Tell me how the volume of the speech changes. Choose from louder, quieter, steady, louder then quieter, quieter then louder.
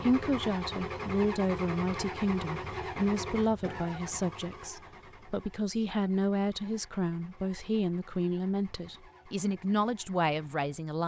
steady.